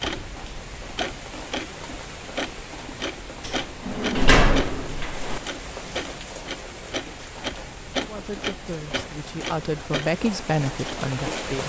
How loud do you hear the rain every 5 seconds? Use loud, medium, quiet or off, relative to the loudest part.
medium, medium, loud.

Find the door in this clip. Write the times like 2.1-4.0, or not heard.
3.4-5.4.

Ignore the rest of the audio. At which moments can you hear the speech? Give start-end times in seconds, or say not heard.
8.0-11.6.